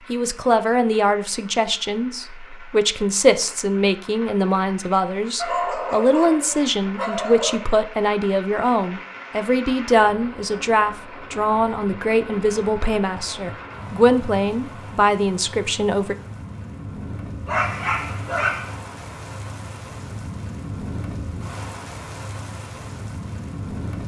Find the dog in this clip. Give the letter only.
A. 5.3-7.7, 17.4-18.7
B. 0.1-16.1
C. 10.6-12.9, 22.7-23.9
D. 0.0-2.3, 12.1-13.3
A.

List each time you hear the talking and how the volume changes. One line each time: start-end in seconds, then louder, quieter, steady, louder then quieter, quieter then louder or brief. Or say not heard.
0.1-16.1 steady.